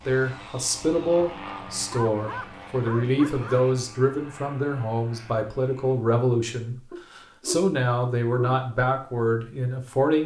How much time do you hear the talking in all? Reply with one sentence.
You can hear the talking for 10 seconds altogether.